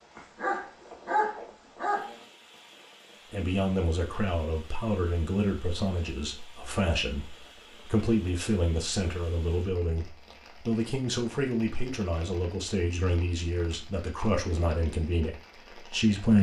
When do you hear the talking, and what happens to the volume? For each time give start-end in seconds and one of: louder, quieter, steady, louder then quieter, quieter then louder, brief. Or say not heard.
3.3-16.3 steady.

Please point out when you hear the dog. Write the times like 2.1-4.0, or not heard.
0.1-2.1.